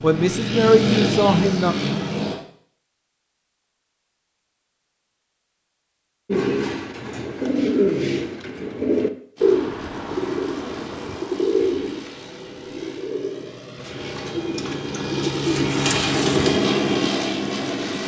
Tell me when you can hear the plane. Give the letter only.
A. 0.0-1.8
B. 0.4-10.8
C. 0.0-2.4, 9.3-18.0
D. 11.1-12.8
C.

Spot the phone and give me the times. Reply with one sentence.
You can't hear the phone here.